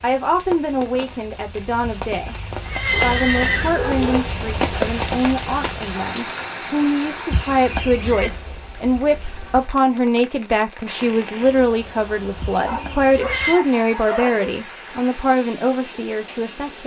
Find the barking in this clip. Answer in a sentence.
The barking can be heard from 2.9 to 4.8 s and from 12.6 to 14.6 s.